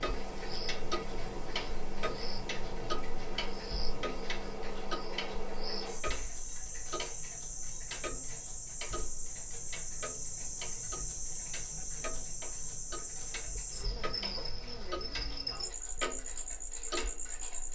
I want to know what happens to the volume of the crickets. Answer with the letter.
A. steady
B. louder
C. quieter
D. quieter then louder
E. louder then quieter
A.